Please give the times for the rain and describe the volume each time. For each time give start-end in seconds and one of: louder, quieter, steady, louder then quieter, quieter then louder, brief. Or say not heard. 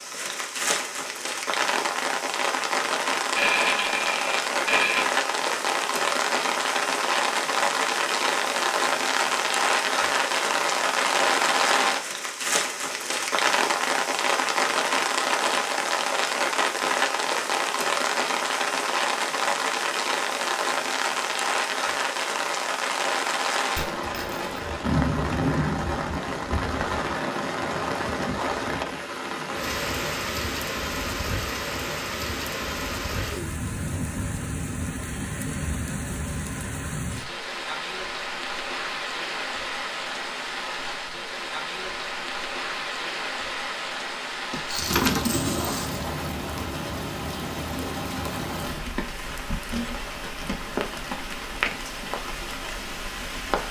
0.0-53.6 quieter.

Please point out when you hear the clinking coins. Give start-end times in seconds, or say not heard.
3.4-5.0, 23.8-24.6, 44.5-46.0.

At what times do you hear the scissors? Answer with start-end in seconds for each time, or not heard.
not heard.